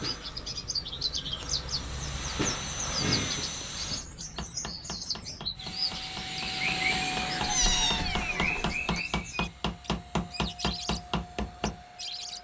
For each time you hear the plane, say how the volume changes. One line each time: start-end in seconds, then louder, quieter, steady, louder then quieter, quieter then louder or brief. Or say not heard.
0.0-4.0 louder
5.5-12.3 quieter.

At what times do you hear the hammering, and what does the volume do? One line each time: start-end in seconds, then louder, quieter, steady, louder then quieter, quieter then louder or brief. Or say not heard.
4.2-11.8 louder.